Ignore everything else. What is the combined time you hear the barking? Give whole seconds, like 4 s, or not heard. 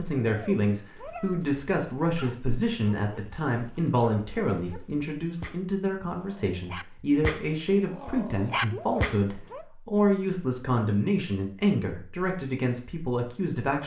8 s.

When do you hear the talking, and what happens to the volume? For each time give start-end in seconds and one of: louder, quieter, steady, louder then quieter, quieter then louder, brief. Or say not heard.
0.0-13.8 steady.